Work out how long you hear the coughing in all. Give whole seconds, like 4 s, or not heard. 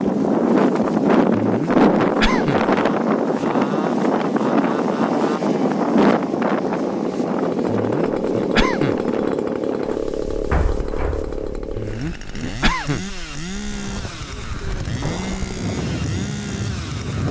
4 s.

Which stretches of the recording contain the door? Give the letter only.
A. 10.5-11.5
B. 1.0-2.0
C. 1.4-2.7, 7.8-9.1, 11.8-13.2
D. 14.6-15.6
A.